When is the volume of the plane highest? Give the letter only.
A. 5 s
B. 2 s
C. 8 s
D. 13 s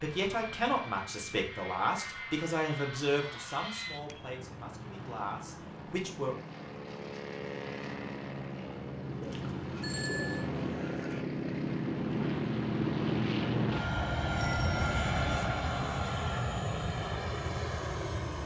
D.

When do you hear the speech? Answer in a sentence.
You can hear the speech from 0.0 to 6.3 s.